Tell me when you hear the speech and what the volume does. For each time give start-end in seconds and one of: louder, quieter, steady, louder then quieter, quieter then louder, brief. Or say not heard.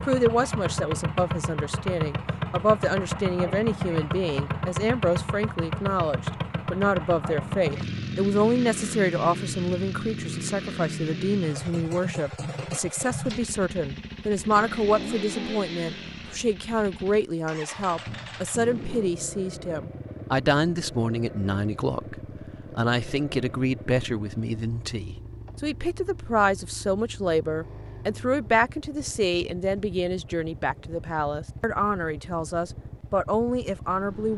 0.0-34.3 steady.